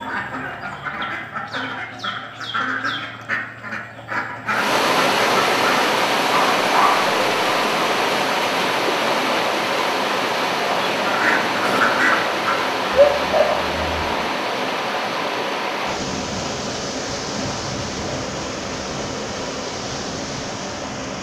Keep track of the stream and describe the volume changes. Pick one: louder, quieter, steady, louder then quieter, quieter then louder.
quieter.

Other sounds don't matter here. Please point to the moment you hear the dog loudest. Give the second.
13 s.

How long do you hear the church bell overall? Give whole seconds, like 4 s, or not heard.
not heard.